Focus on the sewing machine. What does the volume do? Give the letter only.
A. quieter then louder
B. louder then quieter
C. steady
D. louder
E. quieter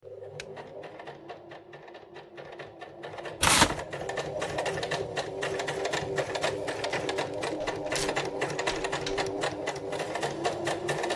D.